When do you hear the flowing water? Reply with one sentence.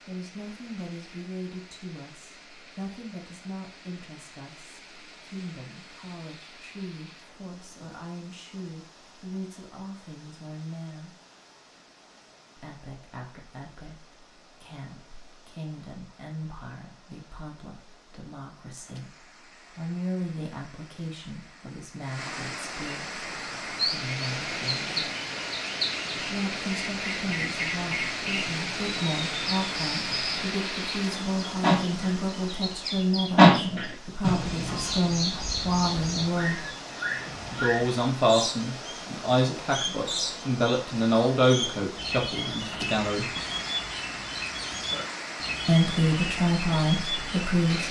You can hear the flowing water from 0.0 to 47.8 s.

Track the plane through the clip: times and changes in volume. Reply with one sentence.
The plane can't be heard in this clip.